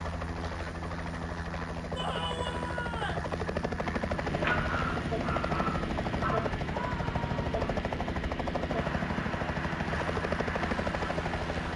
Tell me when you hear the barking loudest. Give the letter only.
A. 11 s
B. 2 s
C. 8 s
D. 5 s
D.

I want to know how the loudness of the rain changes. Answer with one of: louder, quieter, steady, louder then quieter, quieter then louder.
steady.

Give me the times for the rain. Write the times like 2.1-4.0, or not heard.
4.2-11.7.